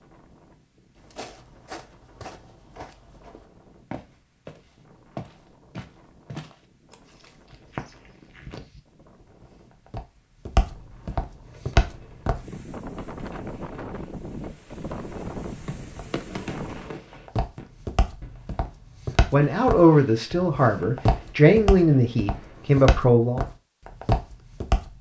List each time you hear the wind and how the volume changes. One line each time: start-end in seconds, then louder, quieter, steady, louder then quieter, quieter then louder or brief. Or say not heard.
0.0-16.9 louder.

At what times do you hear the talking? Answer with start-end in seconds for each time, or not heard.
19.3-23.4.